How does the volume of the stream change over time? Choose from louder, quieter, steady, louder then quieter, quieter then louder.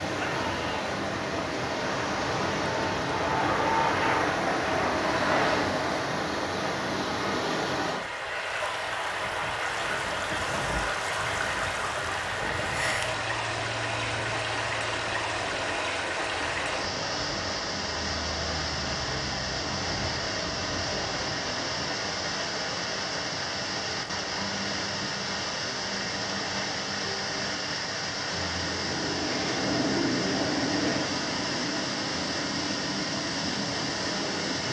steady.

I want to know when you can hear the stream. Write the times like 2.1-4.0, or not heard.
0.0-34.6.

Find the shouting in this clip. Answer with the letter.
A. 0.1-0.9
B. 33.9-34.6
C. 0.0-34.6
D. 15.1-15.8
A.